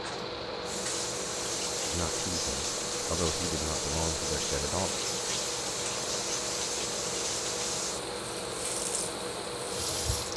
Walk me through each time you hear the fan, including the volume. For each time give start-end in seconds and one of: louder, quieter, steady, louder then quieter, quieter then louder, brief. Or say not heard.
0.0-10.3 steady.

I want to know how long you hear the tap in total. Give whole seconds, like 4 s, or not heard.
10 s.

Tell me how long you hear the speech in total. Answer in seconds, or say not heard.
3 s.